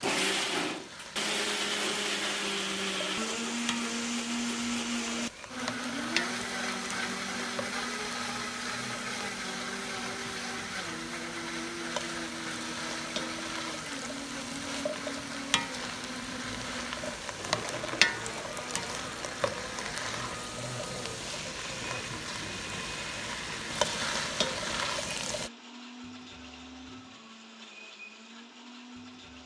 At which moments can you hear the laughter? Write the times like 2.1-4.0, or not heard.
not heard.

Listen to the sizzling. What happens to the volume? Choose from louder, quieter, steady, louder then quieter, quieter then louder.
louder.